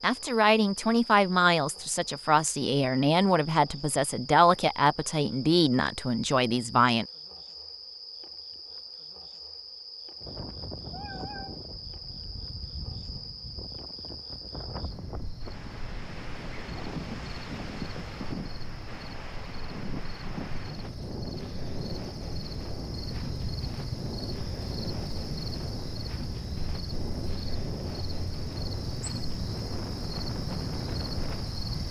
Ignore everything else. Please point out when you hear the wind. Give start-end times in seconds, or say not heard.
10.2-31.6.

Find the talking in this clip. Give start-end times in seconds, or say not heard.
0.0-7.0.